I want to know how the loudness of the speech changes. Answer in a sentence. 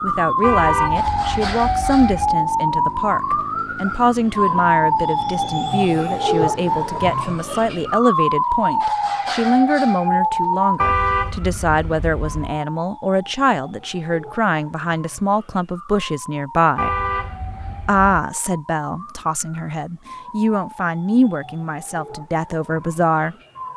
The volume of the speech stays about the same.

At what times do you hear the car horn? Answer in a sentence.
The car horn can be heard from 0.4 to 2.1 s, from 10.8 to 12.6 s and from 16.8 to 18.2 s.